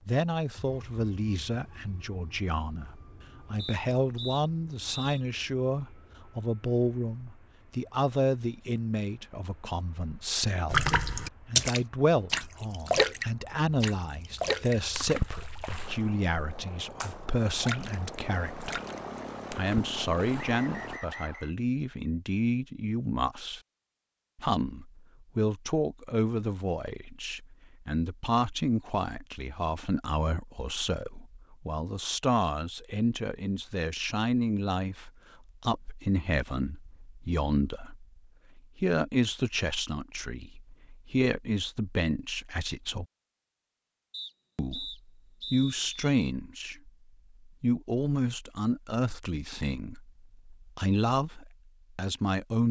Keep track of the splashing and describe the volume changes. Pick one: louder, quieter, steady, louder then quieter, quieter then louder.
quieter.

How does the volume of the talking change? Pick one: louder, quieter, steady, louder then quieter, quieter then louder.
steady.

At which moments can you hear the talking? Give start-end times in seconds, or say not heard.
0.1-18.8, 19.6-23.6, 24.4-43.0, 44.5-52.6.